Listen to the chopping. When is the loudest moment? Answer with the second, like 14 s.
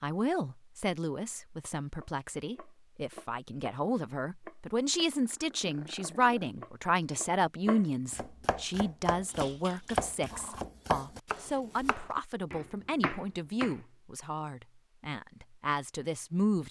10 s.